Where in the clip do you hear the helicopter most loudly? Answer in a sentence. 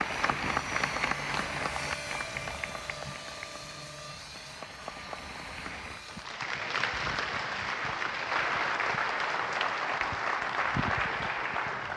The volume of the helicopter peaks at 2 seconds.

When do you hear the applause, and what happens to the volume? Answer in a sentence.
The applause can be heard from 0.0 to 11.9 s, getting quieter then louder.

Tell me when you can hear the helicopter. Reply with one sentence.
You can hear the helicopter from 0.0 to 6.3 s.